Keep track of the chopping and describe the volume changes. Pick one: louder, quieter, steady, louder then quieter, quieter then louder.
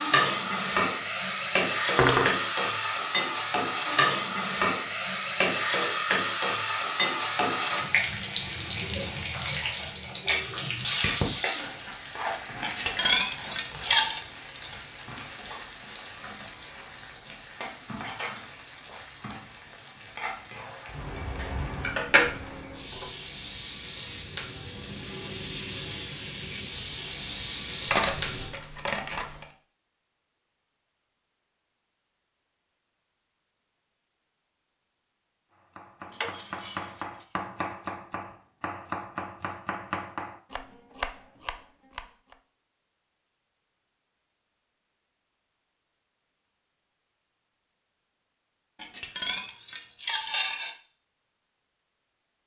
steady.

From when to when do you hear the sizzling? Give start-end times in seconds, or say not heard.
0.0-28.5.